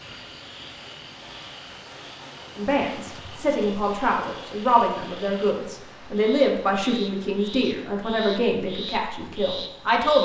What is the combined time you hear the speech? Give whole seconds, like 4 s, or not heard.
8 s.